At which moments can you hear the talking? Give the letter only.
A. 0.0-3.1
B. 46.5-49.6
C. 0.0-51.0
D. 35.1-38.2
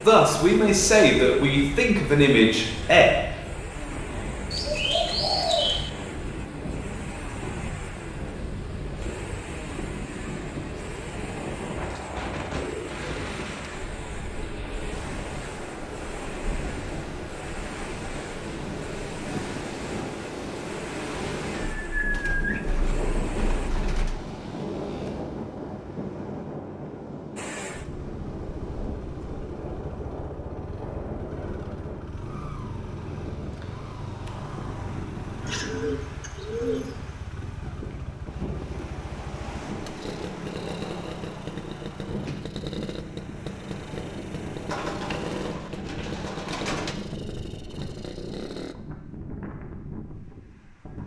A.